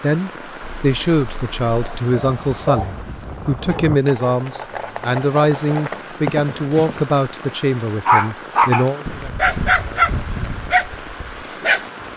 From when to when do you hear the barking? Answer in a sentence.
The barking can be heard from 1.8 to 3.0 s, from 3.6 to 4.5 s and from 8.1 to 11.9 s.